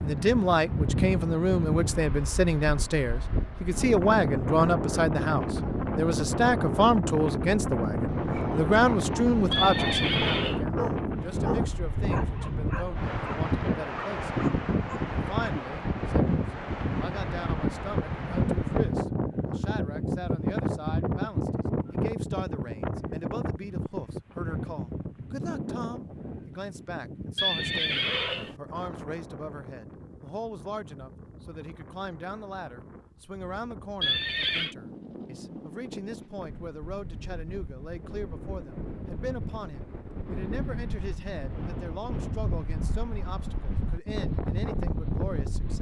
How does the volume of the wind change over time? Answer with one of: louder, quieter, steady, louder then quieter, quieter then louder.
quieter then louder.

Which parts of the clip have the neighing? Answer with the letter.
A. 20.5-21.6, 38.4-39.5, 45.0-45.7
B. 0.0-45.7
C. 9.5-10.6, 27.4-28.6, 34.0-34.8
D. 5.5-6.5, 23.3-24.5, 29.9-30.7
C.